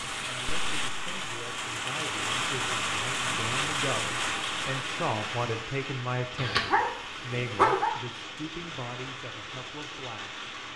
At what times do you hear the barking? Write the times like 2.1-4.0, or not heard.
6.3-8.0.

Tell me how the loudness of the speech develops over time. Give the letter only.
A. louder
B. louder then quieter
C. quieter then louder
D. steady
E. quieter
B.